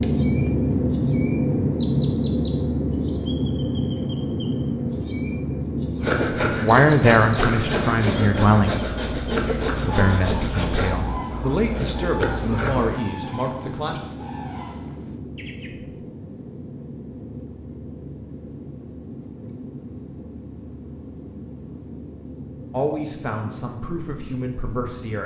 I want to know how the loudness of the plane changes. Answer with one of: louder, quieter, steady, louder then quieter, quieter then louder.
quieter.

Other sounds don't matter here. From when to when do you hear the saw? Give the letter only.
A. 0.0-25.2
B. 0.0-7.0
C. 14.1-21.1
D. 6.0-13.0
D.